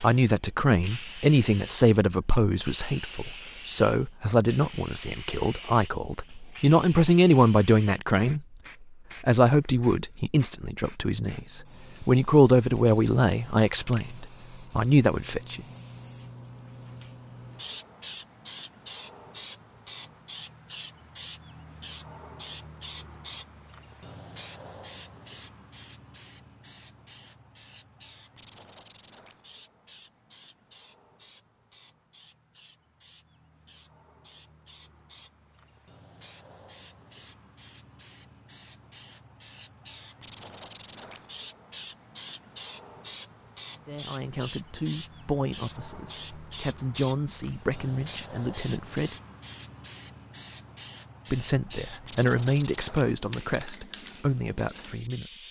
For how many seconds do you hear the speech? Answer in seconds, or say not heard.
24 s.